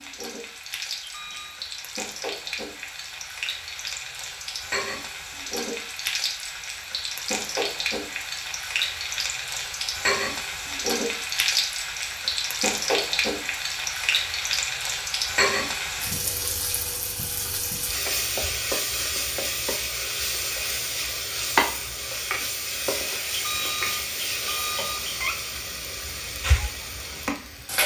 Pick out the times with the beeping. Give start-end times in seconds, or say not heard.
1.0-1.6, 23.3-25.4.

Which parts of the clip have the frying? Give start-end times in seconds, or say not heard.
0.0-27.8.